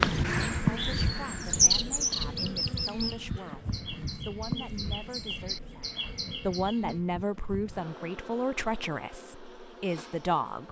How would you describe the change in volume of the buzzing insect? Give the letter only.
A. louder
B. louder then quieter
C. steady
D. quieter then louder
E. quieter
E.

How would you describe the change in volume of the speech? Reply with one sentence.
The volume of the speech goes up.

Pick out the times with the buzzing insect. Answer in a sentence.
You can hear the buzzing insect from 0.0 to 10.6 s.